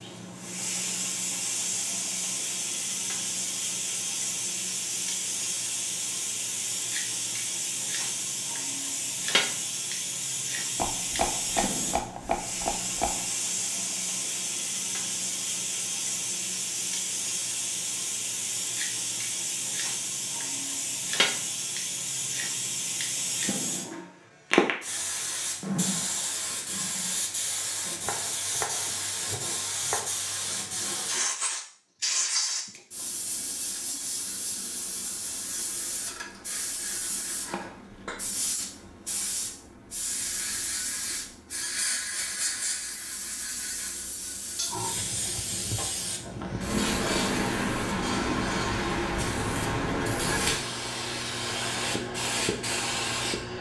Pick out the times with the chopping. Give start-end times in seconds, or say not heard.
10.8-13.2, 28.1-30.1, 37.1-38.0.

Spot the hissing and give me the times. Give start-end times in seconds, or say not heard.
0.0-53.5.